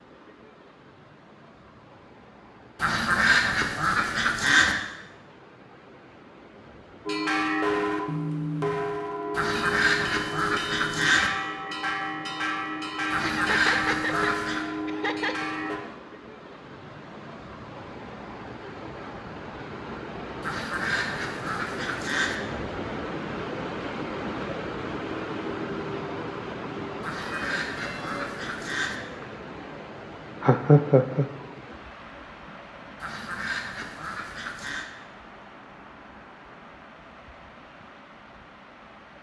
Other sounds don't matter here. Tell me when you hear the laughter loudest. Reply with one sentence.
The loudest moment of the laughter is at 31 seconds.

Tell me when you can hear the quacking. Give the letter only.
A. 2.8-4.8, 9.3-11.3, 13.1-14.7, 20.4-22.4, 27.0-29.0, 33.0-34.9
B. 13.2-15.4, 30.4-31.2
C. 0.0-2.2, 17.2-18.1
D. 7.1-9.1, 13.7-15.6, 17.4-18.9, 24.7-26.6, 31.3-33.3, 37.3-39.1
A.